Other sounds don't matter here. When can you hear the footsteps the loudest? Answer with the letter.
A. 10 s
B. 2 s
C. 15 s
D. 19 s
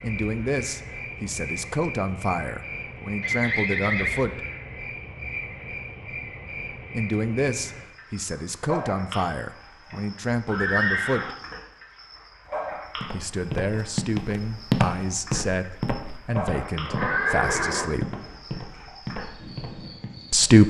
C.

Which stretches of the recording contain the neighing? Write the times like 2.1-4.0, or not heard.
3.2-4.2, 10.4-11.3, 16.6-17.9.